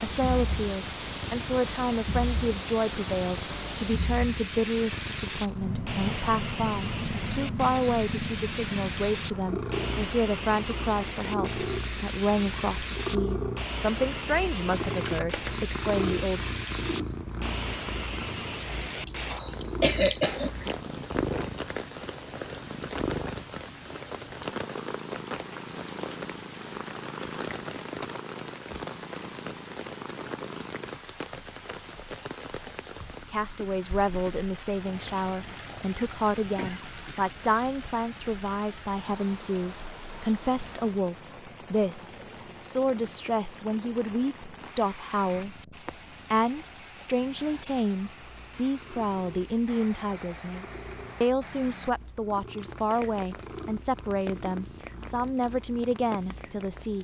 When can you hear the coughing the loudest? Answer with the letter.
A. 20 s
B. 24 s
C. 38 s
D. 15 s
A.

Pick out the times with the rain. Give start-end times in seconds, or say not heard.
0.0-57.0.